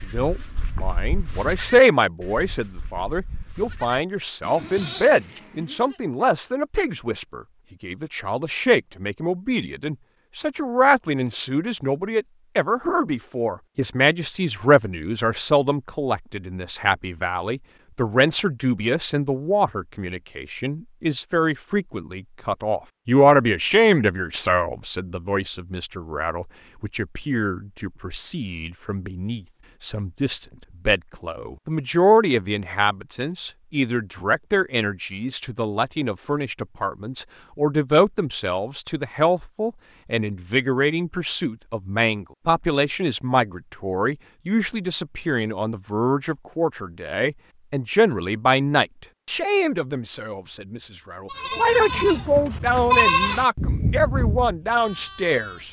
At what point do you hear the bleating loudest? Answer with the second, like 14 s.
53 s.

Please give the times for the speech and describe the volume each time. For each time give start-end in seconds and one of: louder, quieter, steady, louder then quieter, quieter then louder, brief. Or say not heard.
0.0-55.6 steady.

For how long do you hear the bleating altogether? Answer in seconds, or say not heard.
10 s.